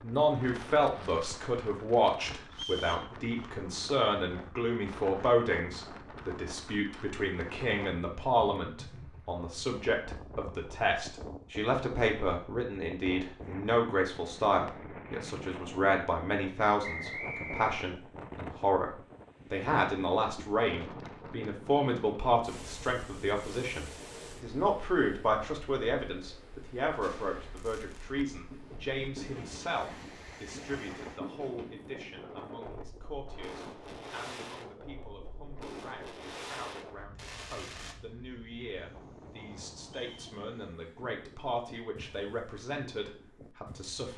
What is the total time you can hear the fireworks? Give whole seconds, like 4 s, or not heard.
11 s.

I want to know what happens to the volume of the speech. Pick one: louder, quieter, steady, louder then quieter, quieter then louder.
quieter.